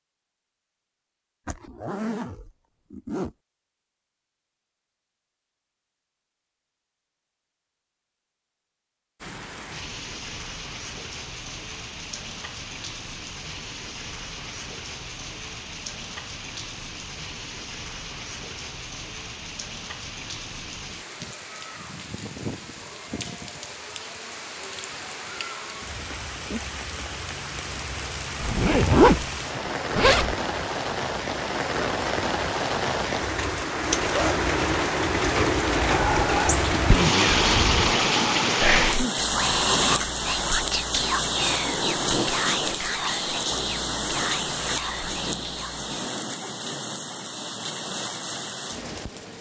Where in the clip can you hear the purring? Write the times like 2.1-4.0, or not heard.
not heard.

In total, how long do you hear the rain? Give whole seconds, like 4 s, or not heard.
40 s.